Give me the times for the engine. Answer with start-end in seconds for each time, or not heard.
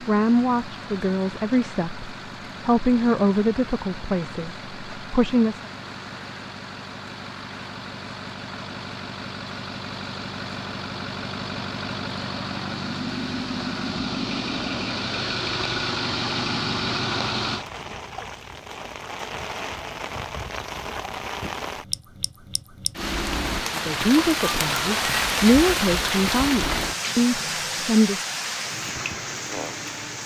0.0-17.6.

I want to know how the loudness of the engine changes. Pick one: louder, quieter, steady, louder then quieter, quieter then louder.
louder.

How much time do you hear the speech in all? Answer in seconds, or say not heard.
10 s.